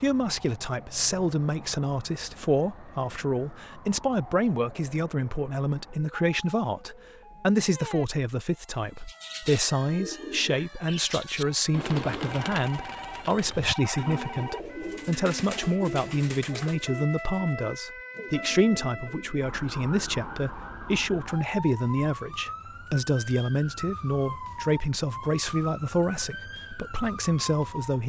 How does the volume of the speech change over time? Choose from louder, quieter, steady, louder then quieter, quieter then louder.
steady.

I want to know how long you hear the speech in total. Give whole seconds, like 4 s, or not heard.
28 s.